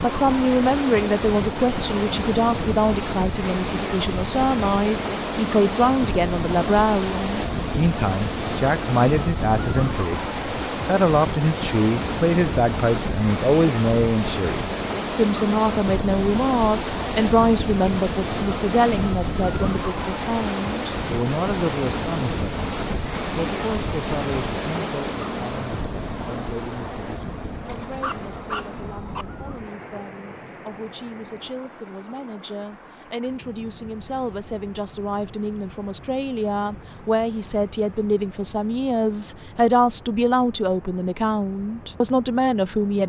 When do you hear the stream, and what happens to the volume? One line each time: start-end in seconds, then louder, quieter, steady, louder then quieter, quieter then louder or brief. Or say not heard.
0.0-43.0 quieter.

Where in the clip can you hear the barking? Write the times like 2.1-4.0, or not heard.
27.6-29.2.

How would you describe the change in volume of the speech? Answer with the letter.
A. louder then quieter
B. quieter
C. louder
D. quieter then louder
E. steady
D.